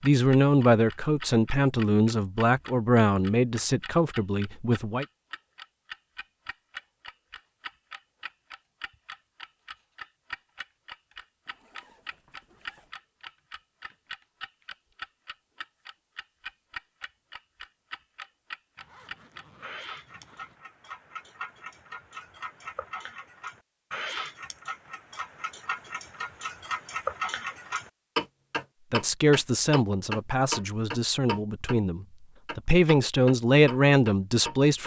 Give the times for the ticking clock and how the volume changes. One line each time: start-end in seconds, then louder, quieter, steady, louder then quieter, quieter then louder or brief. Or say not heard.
0.0-31.8 louder
32.5-34.8 brief.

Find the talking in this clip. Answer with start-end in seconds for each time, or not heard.
0.0-5.0, 28.9-34.8.